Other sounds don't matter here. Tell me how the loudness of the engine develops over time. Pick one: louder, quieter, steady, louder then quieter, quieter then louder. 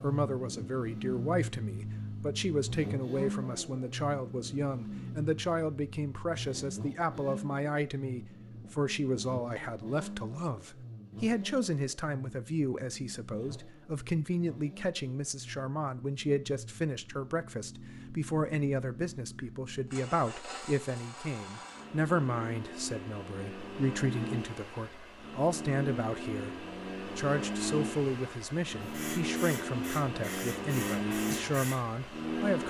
quieter then louder.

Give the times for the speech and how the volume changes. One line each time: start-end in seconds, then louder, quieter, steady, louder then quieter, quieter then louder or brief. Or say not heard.
0.0-32.6 steady.